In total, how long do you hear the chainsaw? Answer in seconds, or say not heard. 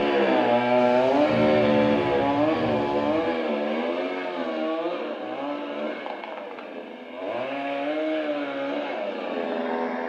10 s.